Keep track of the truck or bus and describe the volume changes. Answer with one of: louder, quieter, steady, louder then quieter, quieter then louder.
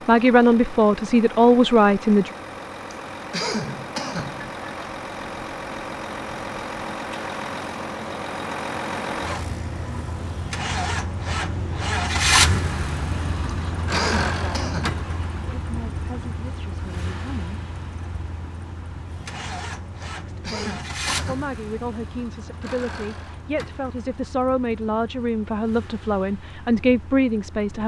louder then quieter.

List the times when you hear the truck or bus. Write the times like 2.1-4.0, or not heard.
0.0-27.8.